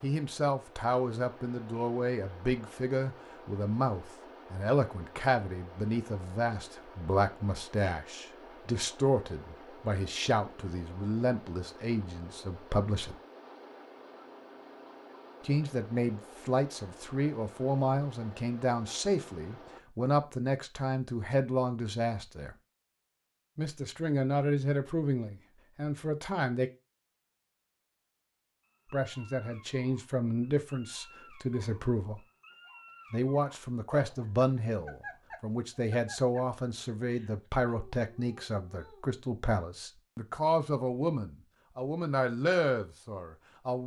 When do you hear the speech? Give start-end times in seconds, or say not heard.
0.0-13.2, 15.4-22.6, 23.6-26.7, 28.9-32.2, 33.1-43.8.